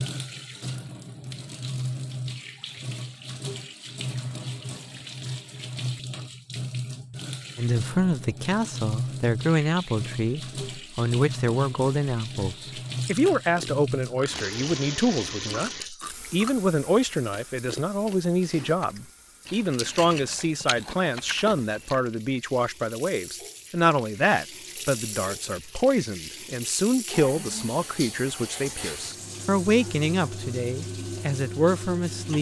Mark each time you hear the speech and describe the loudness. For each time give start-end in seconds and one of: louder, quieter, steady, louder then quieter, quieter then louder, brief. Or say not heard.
7.5-32.3 steady.